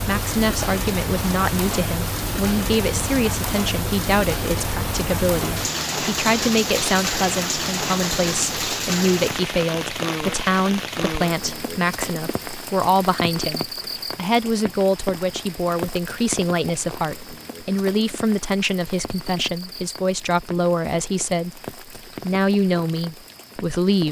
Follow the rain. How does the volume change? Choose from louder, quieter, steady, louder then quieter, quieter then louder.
quieter.